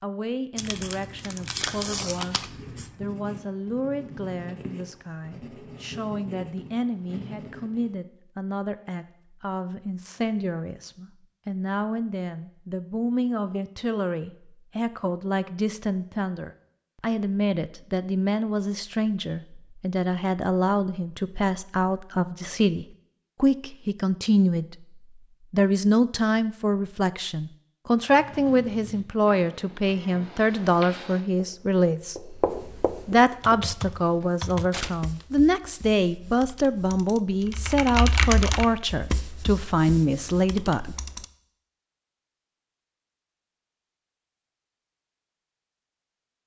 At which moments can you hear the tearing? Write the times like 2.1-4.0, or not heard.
0.6-2.9, 34.7-35.2.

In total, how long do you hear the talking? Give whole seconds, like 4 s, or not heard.
41 s.